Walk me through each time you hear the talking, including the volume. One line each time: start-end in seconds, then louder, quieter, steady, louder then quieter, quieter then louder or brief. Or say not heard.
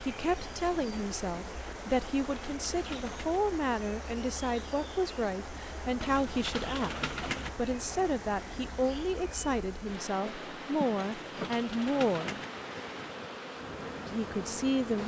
0.0-12.4 steady
14.1-15.0 brief.